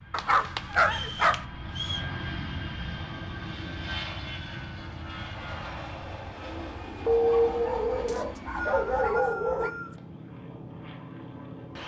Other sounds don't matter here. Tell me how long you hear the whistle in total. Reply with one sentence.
The whistle can be heard for 3 seconds in total.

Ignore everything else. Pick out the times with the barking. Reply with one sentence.
You can hear the barking from 0.1 to 1.4 s and from 7.0 to 9.7 s.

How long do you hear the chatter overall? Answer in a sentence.
The chatter can't be heard in this clip.